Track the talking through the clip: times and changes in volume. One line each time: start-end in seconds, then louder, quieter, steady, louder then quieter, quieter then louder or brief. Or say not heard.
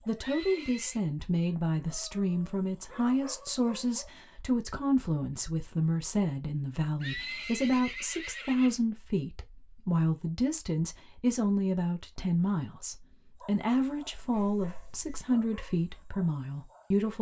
0.1-17.1 steady.